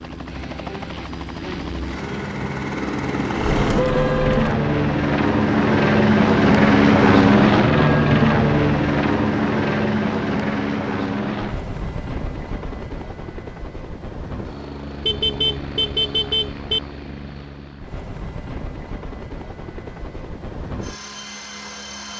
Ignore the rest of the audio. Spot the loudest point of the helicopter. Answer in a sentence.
The loudest moment of the helicopter is at 7 seconds.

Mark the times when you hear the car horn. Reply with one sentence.
The car horn can be heard from 3.4 to 4.5 s and from 15.1 to 16.8 s.